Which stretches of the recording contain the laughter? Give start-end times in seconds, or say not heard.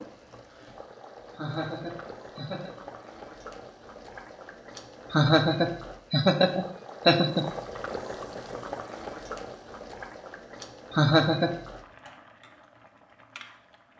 1.4-2.7, 5.1-7.5, 10.9-11.6.